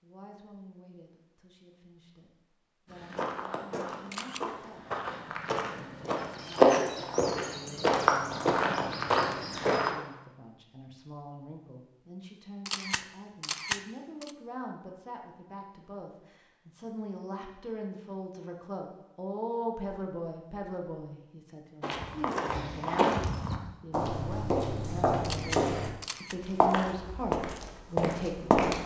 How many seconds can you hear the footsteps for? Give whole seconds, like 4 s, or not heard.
14 s.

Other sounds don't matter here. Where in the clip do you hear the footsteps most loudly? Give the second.
7 s.